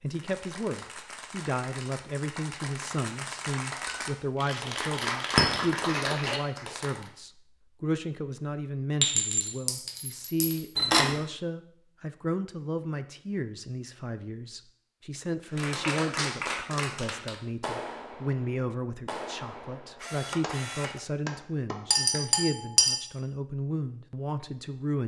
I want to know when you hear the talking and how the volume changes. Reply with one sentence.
You can hear the talking from 0.0 to 25.0 s, at a steady volume.